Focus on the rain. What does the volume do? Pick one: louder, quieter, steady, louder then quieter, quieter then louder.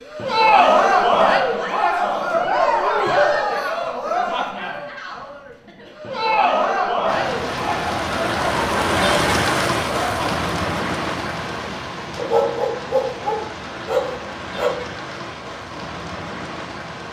quieter.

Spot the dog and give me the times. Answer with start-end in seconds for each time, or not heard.
12.2-14.8.